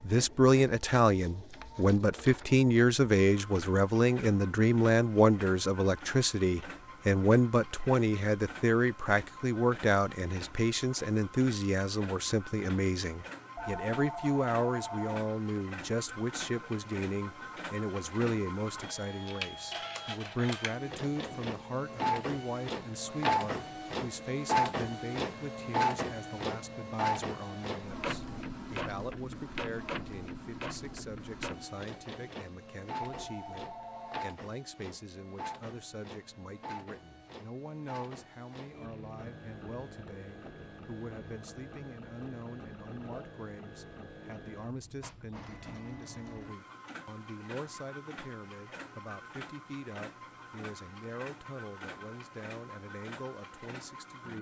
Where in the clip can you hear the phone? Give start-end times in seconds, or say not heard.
13.6-15.2, 33.0-34.2.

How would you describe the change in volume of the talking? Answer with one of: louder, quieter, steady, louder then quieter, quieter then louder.
quieter.